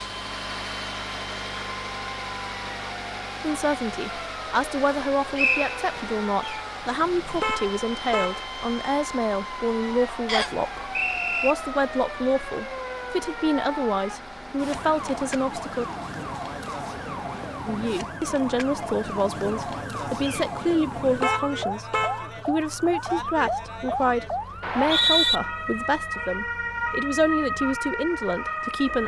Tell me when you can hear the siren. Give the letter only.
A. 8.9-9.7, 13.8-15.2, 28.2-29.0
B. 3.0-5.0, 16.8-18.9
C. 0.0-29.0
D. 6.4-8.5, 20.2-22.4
C.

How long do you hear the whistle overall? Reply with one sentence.
You can hear the whistle for 3 seconds altogether.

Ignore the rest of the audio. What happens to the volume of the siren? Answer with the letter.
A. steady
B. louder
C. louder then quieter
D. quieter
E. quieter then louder
B.